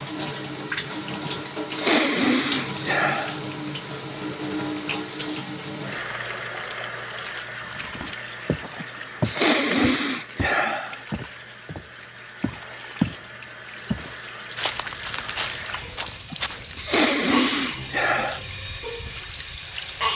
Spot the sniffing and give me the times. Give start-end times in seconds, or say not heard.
1.2-3.4, 8.8-11.0, 16.3-18.4.